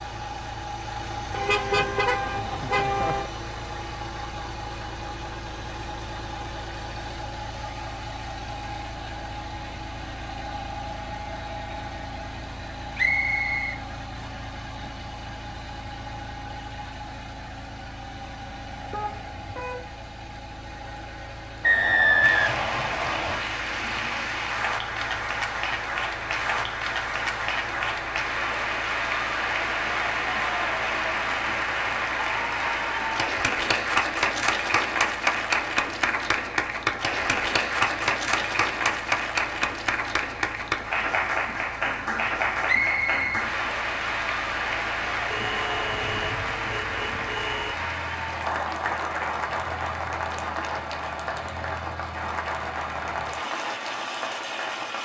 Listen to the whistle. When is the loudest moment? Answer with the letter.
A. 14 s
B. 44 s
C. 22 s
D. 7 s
C.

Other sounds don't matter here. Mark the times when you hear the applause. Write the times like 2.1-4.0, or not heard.
22.2-54.9.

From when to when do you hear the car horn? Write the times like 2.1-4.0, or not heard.
1.3-3.3, 18.9-19.9, 45.2-47.8.